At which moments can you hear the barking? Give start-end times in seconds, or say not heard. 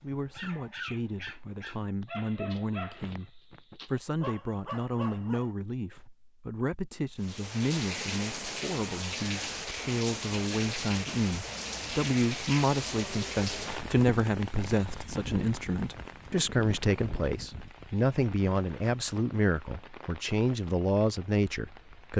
0.0-6.1.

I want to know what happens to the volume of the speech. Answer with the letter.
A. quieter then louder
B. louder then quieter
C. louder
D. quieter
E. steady
C.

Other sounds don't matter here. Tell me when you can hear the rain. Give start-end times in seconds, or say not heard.
7.2-22.1.